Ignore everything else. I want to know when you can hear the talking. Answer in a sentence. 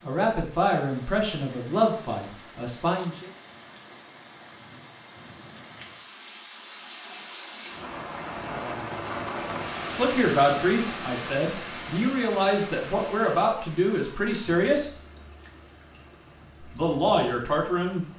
You can hear the talking from 0.0 to 3.3 s, from 9.9 to 14.9 s and from 16.7 to 18.1 s.